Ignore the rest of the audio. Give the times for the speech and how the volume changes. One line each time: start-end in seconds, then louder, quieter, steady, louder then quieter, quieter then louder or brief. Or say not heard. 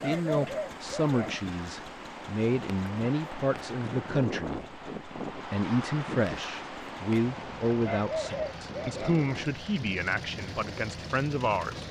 0.0-11.8 steady.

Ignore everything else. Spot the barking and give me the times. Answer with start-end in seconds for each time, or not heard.
0.0-1.4, 7.8-9.2.